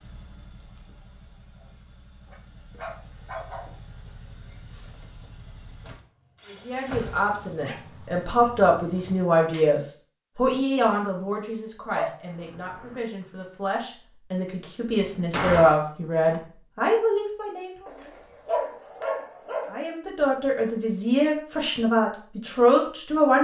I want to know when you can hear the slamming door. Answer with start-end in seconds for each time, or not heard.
6.5-7.3, 15.0-15.8.